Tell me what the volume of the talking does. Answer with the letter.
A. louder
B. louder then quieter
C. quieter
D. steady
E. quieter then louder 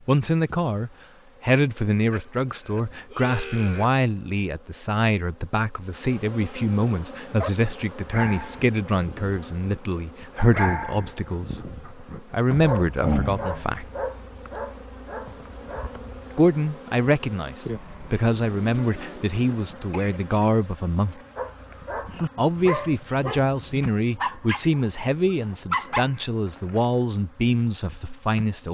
D.